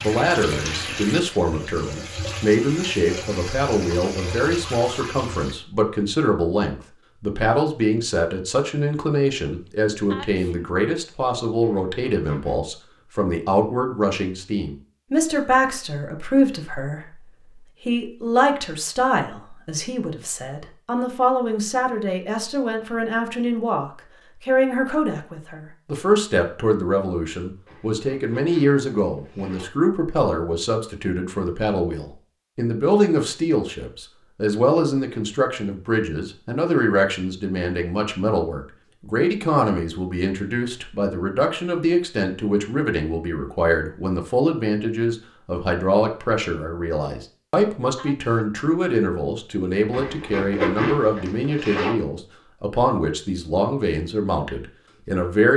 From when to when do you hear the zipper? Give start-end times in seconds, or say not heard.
11.6-12.6, 27.6-29.6, 49.9-52.0.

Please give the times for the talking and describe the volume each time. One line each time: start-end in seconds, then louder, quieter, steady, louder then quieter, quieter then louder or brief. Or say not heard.
0.0-55.5 steady.